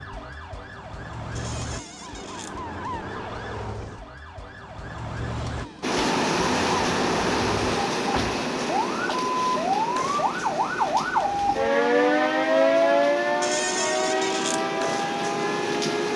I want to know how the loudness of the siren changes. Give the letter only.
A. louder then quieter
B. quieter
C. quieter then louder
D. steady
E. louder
E.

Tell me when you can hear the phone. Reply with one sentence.
You can't hear the phone here.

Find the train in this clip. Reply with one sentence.
The train can be heard from 5.8 to 16.1 s.